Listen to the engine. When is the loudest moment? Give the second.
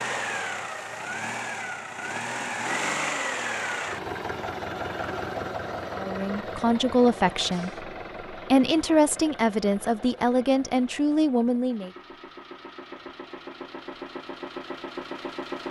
3 s.